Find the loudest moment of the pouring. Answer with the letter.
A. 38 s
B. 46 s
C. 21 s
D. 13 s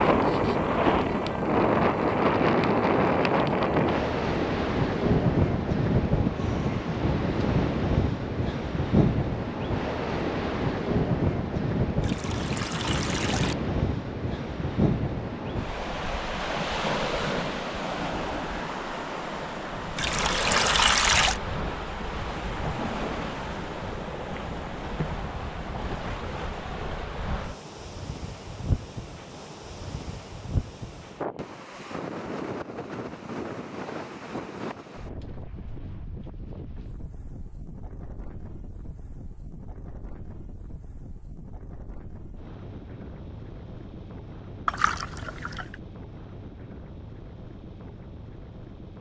C.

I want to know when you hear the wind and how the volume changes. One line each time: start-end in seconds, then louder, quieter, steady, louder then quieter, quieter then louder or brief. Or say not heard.
0.0-48.9 quieter.